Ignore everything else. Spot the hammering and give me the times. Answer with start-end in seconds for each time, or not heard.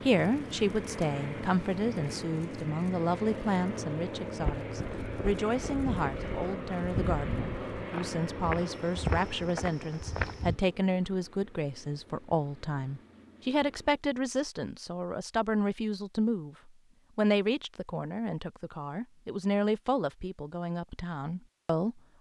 not heard.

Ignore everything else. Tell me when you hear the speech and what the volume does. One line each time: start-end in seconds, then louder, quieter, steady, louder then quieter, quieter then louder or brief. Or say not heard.
0.0-22.1 steady.